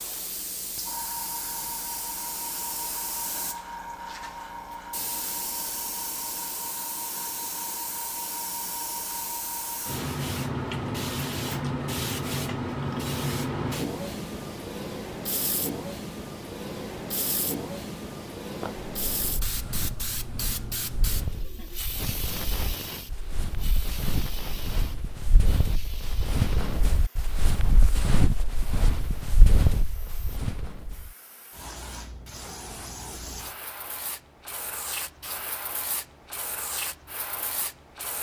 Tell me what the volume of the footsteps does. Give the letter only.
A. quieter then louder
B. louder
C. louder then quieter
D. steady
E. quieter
B.